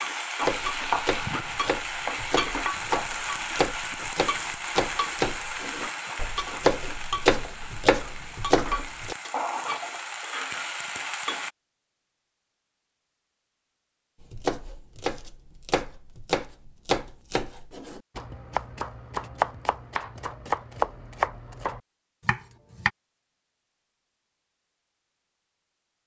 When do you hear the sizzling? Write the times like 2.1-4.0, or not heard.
0.0-11.5.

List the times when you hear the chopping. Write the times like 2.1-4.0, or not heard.
0.5-9.2, 14.2-22.9.